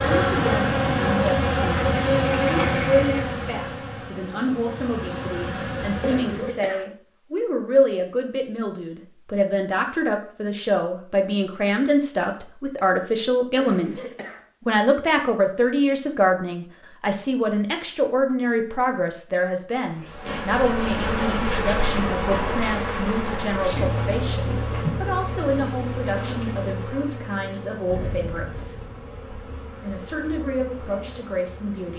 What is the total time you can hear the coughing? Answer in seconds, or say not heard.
3 s.